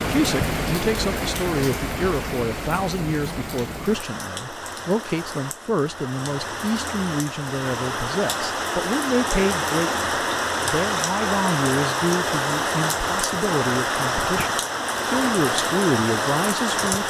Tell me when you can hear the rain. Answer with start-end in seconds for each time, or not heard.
0.0-17.0.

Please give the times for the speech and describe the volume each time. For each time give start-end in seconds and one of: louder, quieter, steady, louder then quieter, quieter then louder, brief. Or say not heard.
0.1-17.0 steady.